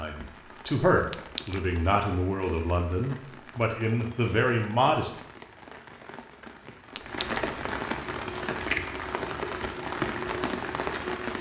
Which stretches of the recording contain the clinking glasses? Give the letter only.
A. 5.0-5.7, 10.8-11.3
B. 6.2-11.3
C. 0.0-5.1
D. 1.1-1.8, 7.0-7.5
D.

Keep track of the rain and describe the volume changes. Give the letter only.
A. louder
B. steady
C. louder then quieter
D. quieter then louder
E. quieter
A.